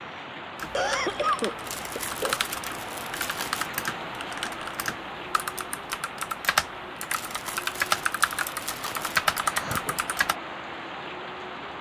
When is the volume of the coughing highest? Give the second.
1 s.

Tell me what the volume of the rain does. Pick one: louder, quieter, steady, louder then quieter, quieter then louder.
steady.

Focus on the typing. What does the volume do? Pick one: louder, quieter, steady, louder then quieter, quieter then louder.
louder.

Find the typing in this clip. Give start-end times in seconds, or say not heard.
0.6-10.3.